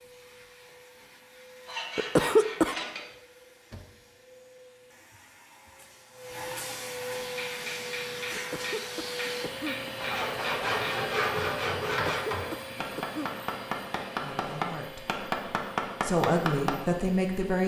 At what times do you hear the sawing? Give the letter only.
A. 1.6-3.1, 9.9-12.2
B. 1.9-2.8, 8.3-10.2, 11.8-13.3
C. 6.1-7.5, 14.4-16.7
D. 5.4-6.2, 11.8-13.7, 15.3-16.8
A.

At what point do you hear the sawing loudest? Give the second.
11 s.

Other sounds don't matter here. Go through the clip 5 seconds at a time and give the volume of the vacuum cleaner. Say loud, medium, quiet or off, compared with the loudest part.
quiet, loud, loud, medium.